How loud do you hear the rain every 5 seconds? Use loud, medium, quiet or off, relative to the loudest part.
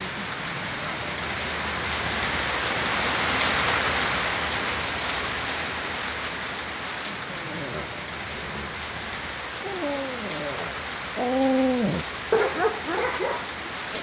loud, medium, medium.